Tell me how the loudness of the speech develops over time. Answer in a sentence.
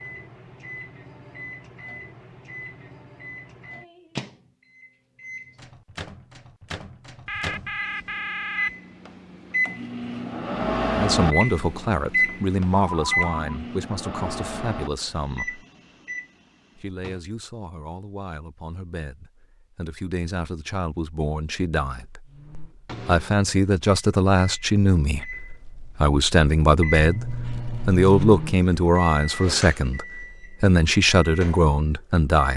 The loudness of the speech goes down, then up.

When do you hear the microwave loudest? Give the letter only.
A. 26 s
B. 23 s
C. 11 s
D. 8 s
C.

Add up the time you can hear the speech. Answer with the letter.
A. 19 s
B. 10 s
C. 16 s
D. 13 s
A.